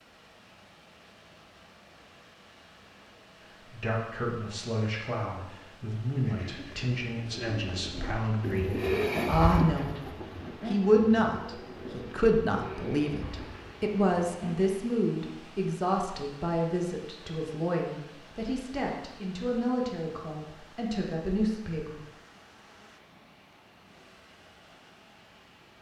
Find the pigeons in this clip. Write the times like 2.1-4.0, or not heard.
6.2-14.8.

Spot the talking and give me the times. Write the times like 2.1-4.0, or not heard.
3.6-22.0.